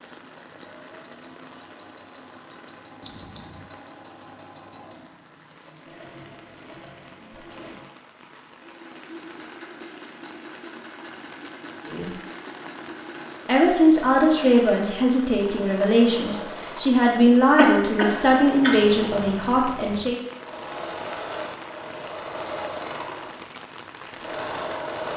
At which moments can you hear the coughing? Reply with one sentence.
The coughing can be heard from 17.1 to 18.9 s.